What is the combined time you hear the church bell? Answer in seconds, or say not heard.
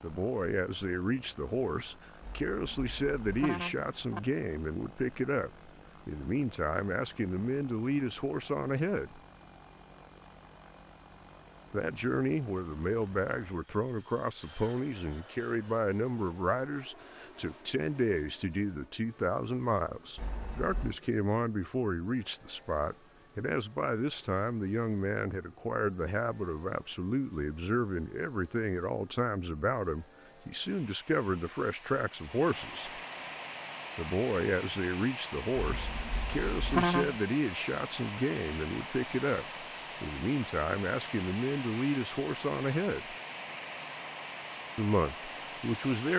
not heard.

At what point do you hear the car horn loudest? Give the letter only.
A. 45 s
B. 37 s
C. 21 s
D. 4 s
B.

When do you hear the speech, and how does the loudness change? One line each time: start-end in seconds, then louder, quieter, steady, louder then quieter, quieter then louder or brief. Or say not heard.
0.0-9.2 steady
11.7-33.0 steady
34.0-43.1 steady
44.8-46.1 brief.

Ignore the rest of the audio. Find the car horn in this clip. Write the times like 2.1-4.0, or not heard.
2.2-4.2, 20.1-21.0, 35.5-37.1.